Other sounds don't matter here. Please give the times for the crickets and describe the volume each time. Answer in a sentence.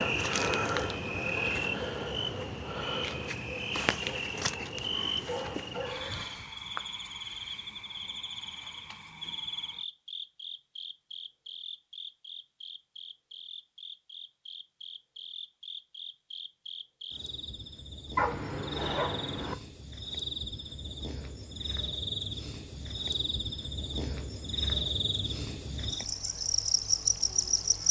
The crickets can be heard from 0.0 to 27.8 s, getting quieter then louder.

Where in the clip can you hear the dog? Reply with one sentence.
You can hear the dog from 4.7 to 6.2 s and from 18.1 to 19.6 s.